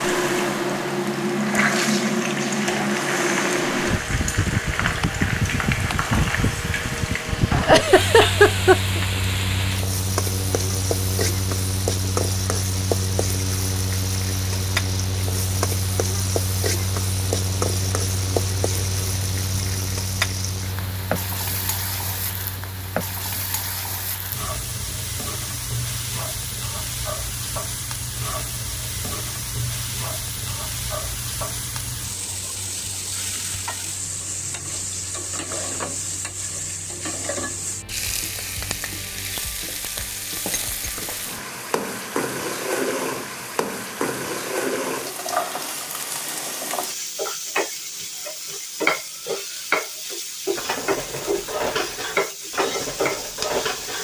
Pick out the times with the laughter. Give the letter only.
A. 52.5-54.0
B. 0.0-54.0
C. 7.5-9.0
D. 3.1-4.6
C.